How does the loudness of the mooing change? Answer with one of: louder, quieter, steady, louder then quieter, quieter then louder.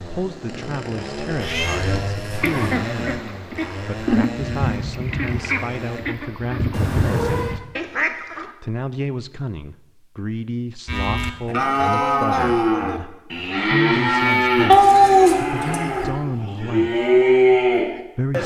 quieter then louder.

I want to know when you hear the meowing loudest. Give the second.
15 s.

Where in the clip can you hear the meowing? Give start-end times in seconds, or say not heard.
1.4-2.5, 6.7-7.5, 14.7-16.1.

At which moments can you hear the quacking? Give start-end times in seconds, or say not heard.
2.4-8.5.